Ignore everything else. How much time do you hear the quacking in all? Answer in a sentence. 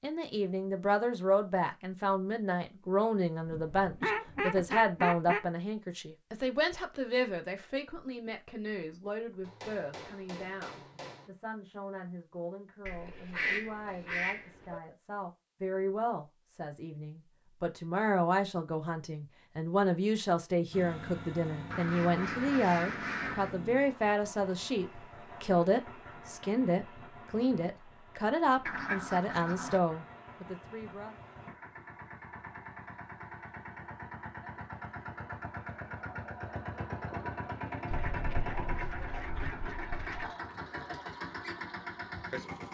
You can hear the quacking for 9 seconds altogether.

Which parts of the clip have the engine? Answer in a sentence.
You can hear the engine from 20.7 to 42.7 s.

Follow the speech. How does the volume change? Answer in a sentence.
The loudness of the speech goes down, then up.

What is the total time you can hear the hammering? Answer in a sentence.
You can hear the hammering for 2 seconds altogether.